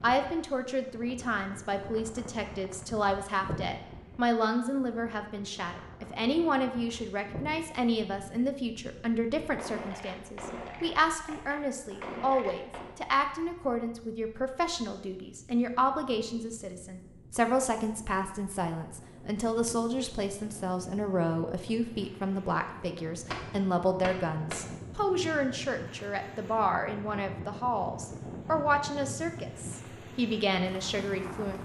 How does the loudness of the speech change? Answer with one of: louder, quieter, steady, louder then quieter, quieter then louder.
steady.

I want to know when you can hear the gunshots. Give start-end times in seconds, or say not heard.
9.6-12.9, 23.3-24.6.